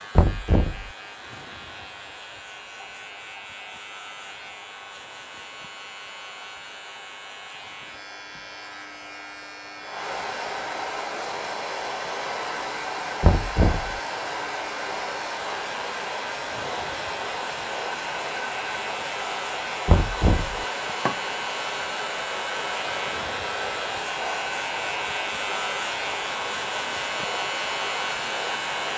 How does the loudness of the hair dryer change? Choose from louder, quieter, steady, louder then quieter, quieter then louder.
louder.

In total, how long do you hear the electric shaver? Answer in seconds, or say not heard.
29 s.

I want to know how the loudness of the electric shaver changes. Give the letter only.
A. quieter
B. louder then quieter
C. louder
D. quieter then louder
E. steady
C.